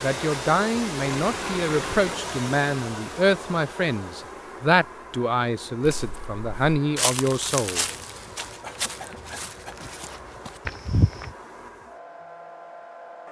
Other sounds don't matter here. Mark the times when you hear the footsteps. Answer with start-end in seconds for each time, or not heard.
5.8-11.3.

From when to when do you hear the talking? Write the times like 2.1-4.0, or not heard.
0.0-7.8.